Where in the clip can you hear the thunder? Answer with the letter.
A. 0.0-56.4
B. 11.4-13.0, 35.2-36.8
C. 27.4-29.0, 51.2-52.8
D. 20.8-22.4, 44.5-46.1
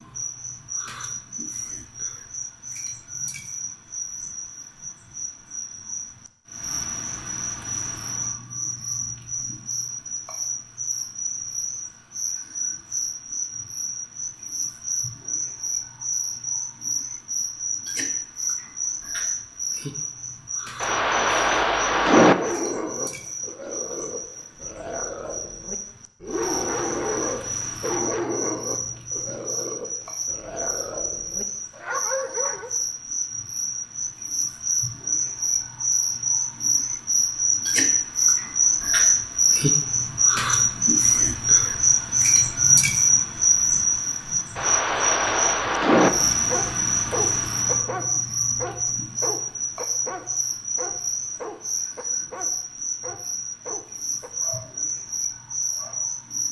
D.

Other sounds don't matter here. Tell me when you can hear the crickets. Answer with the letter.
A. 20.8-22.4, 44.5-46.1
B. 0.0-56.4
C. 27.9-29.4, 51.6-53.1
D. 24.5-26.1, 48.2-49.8
B.